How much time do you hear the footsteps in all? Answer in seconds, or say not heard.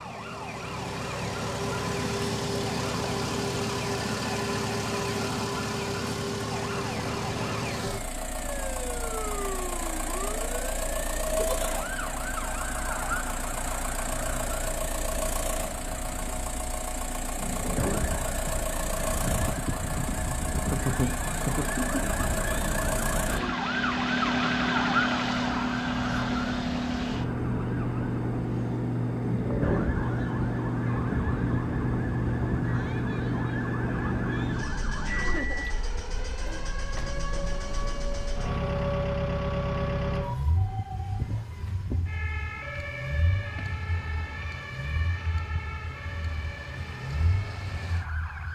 not heard.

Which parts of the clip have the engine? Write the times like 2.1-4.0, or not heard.
0.0-48.4.